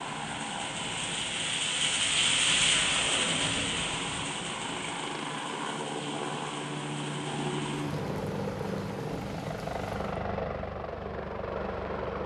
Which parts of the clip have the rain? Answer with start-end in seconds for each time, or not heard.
0.0-10.2.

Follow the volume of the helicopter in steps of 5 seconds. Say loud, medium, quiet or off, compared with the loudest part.
medium, loud, loud.